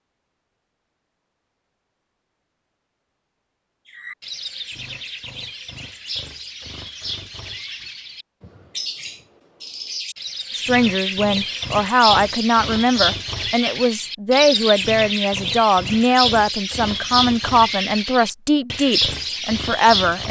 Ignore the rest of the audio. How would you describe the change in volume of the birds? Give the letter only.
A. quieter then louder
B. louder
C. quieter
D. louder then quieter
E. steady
B.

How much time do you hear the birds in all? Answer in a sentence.
The birds can be heard for 16 seconds in total.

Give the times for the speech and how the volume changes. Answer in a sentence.
The speech can be heard from 10.6 to 20.2 s, at a steady volume.